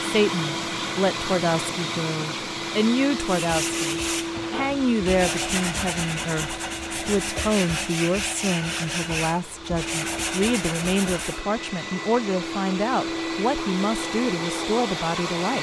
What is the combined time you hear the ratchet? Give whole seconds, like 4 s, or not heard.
not heard.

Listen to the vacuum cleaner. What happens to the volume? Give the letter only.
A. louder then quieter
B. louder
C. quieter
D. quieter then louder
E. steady
D.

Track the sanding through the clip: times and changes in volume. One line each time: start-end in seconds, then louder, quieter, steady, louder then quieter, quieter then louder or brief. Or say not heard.
3.1-11.4 steady.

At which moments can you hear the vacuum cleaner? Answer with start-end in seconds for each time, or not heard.
0.0-15.5.